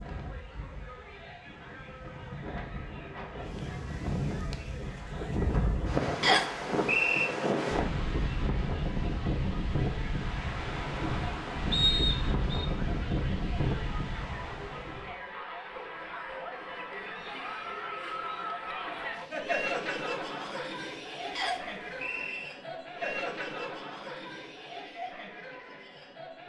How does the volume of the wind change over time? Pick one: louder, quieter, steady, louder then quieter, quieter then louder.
louder.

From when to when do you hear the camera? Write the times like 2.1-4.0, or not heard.
not heard.